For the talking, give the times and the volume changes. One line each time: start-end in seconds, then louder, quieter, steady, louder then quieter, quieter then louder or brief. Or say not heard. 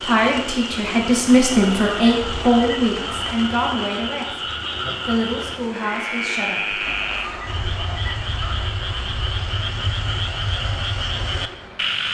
0.0-6.8 quieter.